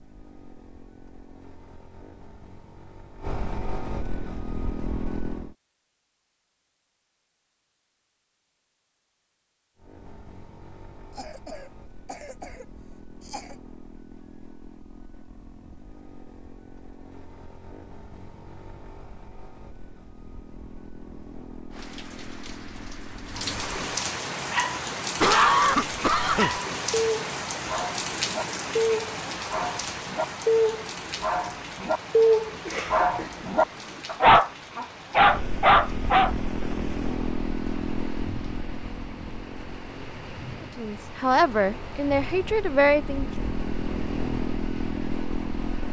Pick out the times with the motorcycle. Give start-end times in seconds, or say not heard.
0.0-5.5, 9.8-23.8, 35.1-45.8.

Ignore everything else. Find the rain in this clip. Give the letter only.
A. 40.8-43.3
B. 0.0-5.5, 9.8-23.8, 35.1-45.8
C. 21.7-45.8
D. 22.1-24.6
C.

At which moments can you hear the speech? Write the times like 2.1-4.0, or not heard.
40.8-43.3.